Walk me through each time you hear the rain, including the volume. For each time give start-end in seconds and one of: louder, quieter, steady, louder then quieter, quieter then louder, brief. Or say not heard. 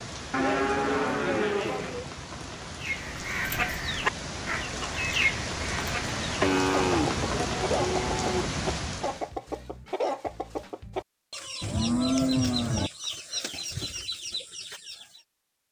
0.0-9.3 louder.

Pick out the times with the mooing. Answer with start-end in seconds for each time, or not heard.
0.3-2.0, 6.4-8.4, 11.6-12.9.